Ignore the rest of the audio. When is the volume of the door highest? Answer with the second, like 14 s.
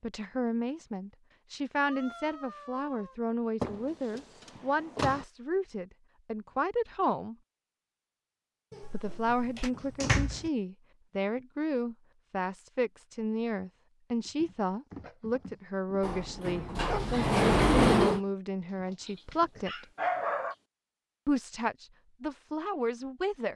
18 s.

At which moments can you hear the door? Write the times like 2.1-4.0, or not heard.
3.6-5.2, 8.7-10.5, 16.0-18.2.